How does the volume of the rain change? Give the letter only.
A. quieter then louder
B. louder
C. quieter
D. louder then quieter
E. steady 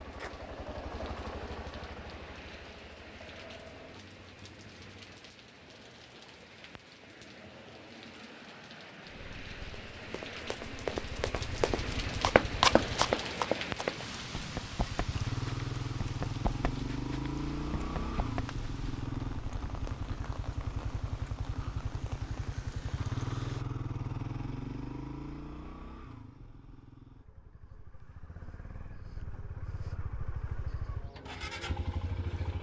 D.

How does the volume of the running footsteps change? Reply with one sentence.
The volume of the running footsteps goes up, then down.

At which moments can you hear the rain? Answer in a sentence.
The rain can be heard from 0.0 to 23.6 s.